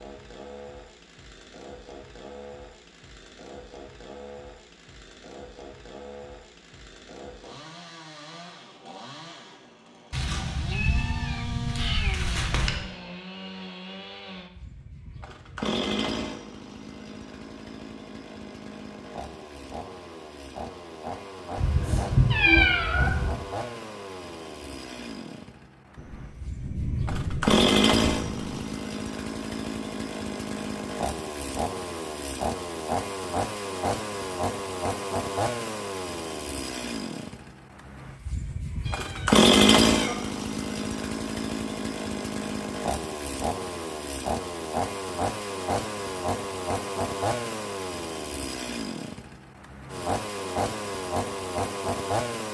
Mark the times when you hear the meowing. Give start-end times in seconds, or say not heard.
10.1-12.8, 21.6-23.3, 38.9-40.1.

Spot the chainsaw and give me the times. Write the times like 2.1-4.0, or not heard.
0.0-52.4.